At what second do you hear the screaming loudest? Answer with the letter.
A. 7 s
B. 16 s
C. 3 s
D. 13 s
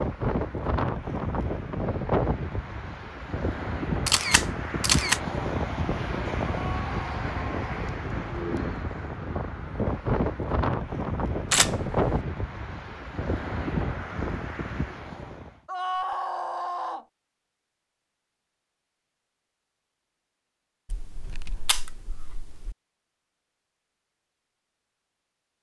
B.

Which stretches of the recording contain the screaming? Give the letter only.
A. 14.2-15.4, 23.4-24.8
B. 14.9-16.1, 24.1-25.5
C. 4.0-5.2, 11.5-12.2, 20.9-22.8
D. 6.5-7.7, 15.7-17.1
D.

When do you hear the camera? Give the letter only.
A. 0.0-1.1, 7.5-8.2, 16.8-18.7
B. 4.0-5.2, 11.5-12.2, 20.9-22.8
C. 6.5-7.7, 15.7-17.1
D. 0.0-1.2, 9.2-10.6
B.